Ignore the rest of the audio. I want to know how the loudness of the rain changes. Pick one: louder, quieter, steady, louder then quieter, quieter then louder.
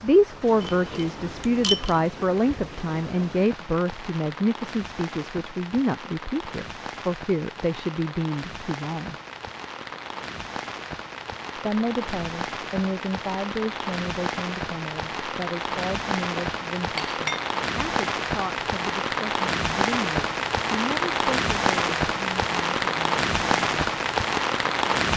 louder.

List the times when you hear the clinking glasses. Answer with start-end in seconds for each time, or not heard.
0.6-2.0, 16.4-17.5.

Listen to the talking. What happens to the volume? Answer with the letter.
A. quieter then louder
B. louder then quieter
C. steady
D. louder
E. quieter
E.